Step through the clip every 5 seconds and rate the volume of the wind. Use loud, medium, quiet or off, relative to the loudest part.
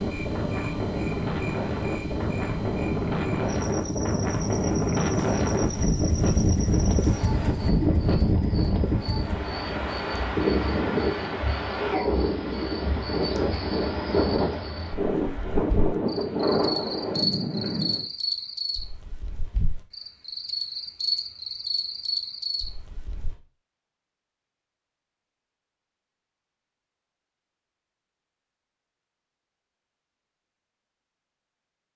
loud, loud, loud, loud, off, off, off.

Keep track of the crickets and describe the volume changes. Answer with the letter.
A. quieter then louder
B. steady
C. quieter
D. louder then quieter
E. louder
E.